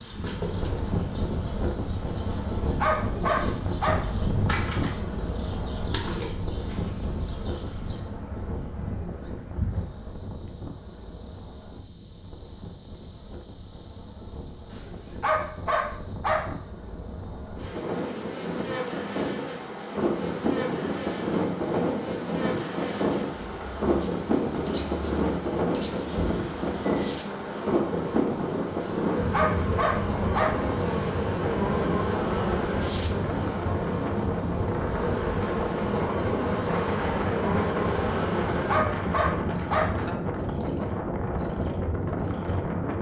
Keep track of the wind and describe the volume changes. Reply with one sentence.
The volume of the wind goes down, then up.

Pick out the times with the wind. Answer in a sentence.
The wind can be heard from 0.0 to 42.9 s.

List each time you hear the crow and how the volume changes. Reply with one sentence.
The crow can't be heard in this clip.